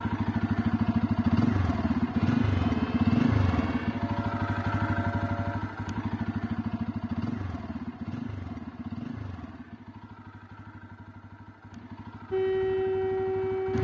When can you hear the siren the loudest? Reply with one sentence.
The loudest moment of the siren is at 13 seconds.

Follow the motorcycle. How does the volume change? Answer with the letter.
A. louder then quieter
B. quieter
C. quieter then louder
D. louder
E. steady
B.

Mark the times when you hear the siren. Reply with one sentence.
You can hear the siren from 2.2 to 5.6 s and from 12.3 to 13.7 s.